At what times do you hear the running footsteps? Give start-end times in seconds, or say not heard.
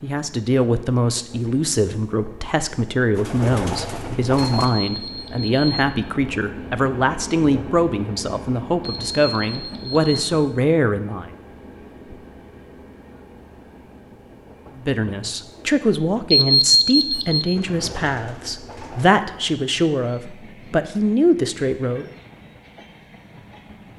not heard.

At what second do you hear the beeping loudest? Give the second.
17 s.